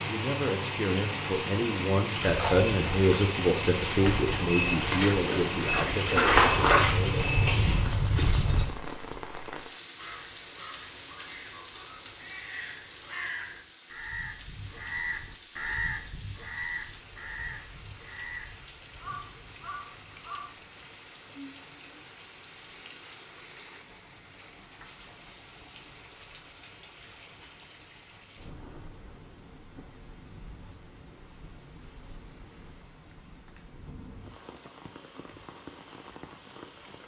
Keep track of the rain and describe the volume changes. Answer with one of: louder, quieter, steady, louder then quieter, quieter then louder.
quieter.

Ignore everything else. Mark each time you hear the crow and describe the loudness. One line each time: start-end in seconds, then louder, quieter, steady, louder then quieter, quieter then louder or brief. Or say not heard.
9.9-20.5 louder then quieter.